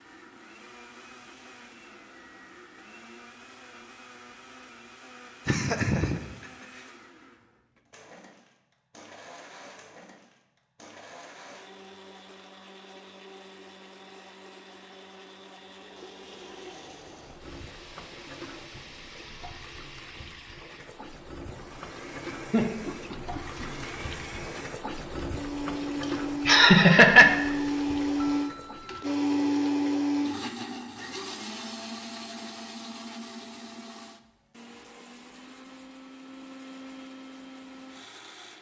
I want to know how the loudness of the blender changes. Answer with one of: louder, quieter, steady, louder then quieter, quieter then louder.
louder then quieter.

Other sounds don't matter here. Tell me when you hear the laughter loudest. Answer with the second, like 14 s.
27 s.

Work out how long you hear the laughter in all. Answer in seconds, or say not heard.
3 s.